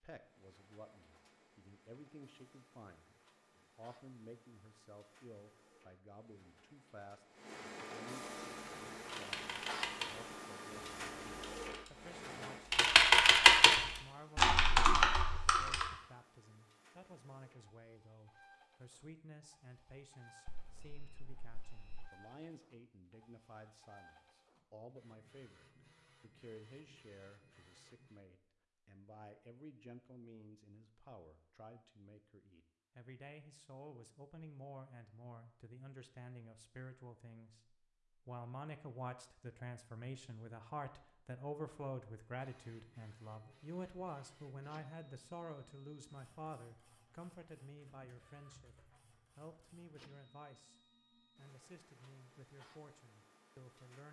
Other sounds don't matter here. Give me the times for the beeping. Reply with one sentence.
You can hear the beeping from 20.4 to 22.1 s.